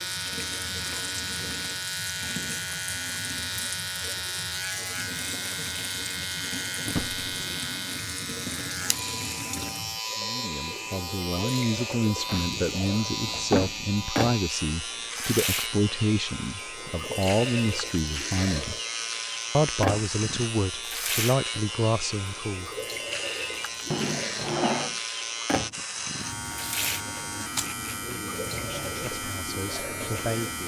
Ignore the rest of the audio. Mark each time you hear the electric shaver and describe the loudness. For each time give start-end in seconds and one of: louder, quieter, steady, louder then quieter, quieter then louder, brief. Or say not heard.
0.0-30.6 steady.